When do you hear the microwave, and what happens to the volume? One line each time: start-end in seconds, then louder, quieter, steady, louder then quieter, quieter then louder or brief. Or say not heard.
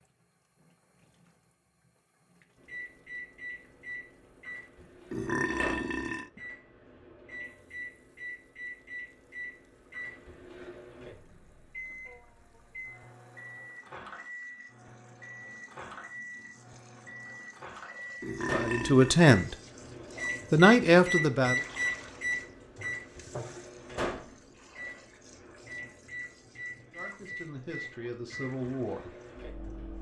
2.5-29.9 louder then quieter.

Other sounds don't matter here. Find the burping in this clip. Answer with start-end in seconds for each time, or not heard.
5.1-6.3, 18.2-19.2.